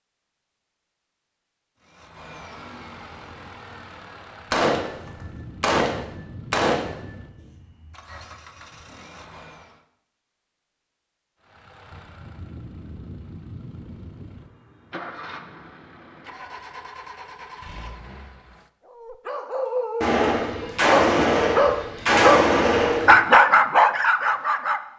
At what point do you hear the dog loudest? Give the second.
23 s.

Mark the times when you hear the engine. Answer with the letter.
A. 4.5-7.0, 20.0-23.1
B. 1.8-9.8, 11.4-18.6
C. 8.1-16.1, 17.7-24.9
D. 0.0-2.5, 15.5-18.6
B.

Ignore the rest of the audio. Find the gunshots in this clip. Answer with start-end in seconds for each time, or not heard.
4.5-7.0, 20.0-23.1.